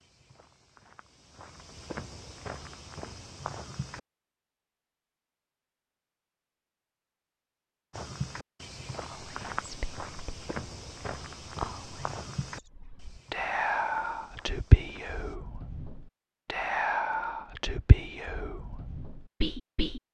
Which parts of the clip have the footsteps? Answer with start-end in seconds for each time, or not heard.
0.0-4.0, 7.9-15.4.